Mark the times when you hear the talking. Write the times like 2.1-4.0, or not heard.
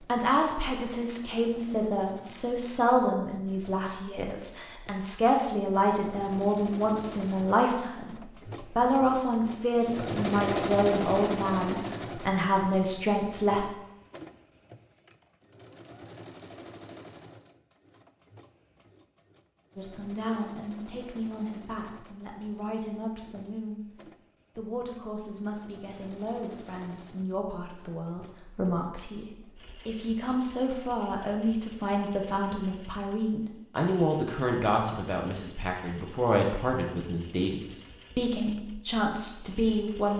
0.1-13.7, 19.8-40.1.